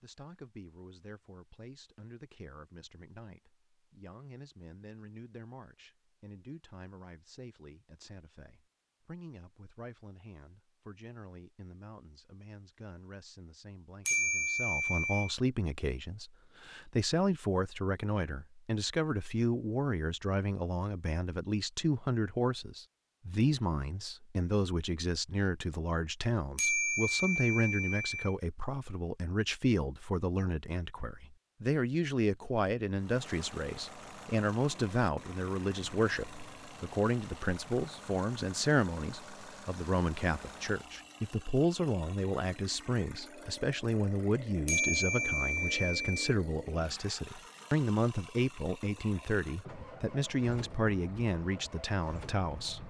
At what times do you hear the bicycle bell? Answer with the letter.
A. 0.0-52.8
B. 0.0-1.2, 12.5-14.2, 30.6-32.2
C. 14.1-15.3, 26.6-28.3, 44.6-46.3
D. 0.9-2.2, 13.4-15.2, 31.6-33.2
C.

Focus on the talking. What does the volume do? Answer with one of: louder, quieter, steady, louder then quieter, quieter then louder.
louder.